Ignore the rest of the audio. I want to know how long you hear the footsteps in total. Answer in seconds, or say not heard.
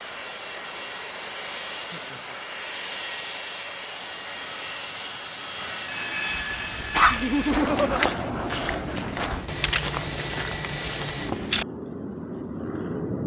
5 s.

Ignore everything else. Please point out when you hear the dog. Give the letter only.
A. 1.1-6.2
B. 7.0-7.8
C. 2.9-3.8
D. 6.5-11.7
B.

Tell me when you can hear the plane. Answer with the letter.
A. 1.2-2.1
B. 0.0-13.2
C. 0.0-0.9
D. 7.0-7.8
B.